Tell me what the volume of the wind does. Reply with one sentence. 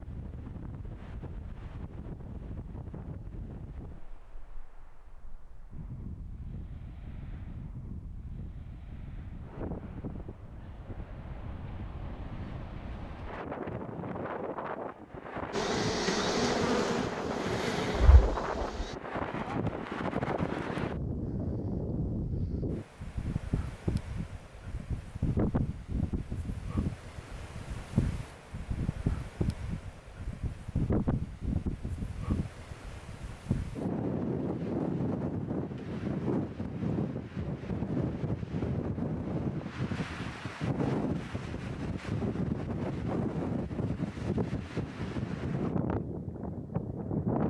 The loudness of the wind goes up.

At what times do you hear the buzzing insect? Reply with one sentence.
The buzzing insect can be heard from 15.5 to 18.9 s.